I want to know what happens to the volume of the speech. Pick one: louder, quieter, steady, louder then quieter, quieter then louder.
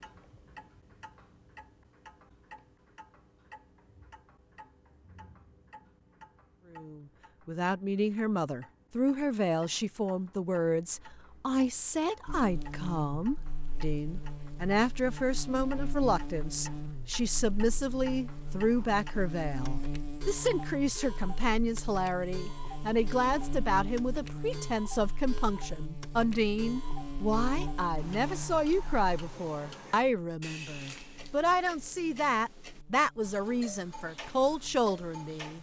steady.